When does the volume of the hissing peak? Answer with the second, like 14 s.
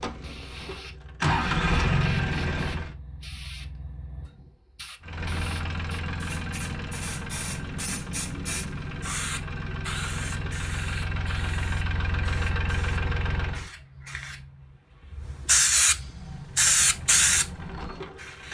17 s.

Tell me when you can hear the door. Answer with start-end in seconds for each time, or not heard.
not heard.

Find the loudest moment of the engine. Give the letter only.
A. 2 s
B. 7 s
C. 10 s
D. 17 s
A.